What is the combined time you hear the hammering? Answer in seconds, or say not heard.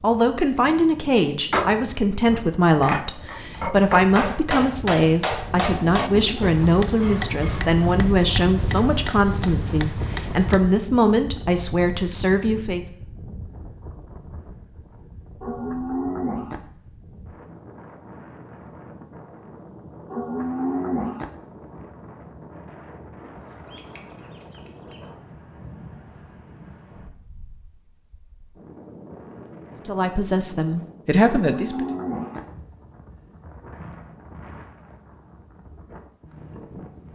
9 s.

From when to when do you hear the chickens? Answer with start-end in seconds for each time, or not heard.
23.4-25.1.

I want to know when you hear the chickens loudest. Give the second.
24 s.